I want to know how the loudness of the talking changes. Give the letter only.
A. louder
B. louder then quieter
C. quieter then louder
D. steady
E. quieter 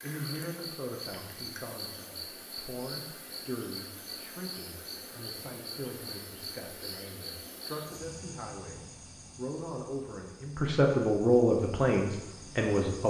A.